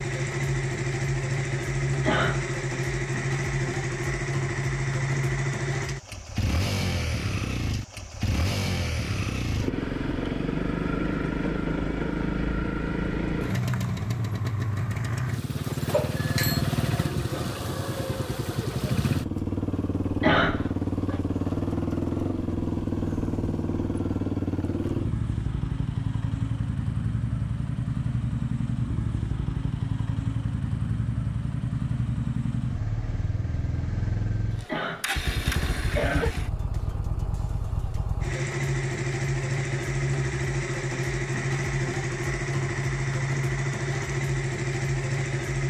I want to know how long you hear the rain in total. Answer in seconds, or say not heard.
not heard.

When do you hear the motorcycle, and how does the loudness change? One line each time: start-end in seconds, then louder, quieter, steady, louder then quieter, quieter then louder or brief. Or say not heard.
0.0-45.6 steady.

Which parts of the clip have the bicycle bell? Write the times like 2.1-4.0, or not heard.
15.9-16.6.